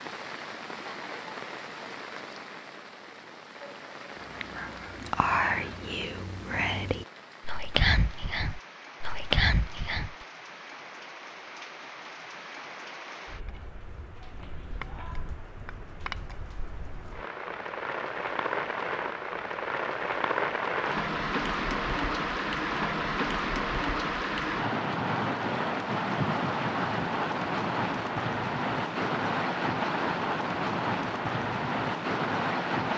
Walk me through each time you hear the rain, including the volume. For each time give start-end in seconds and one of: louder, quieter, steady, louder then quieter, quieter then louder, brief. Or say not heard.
0.0-32.9 louder.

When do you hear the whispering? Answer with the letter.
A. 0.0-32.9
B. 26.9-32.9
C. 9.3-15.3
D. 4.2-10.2
D.